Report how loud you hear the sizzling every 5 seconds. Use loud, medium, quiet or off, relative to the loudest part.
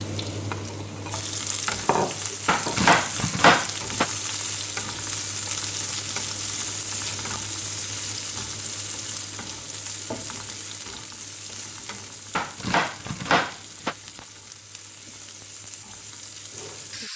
loud, loud, medium, medium.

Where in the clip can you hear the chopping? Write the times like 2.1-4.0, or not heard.
2.5-4.1, 12.3-14.2.